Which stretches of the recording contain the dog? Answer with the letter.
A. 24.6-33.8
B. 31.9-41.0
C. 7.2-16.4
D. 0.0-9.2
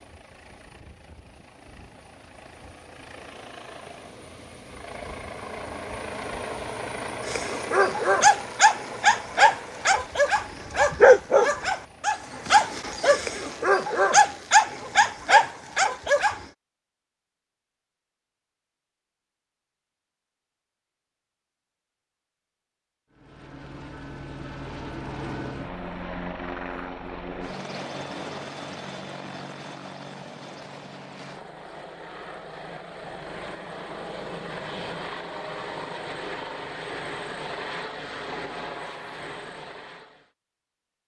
C.